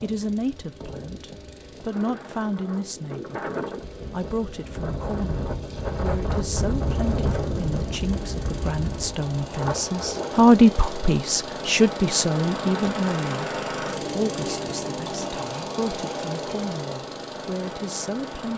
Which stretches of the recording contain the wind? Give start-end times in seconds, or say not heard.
0.0-10.4.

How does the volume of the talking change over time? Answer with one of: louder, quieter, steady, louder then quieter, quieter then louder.
louder then quieter.